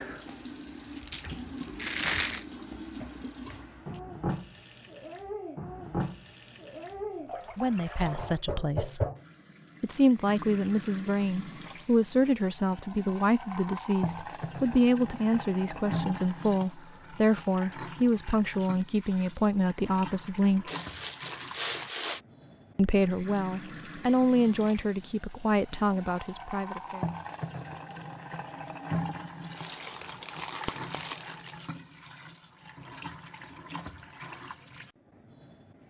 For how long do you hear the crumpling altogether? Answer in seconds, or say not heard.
5 s.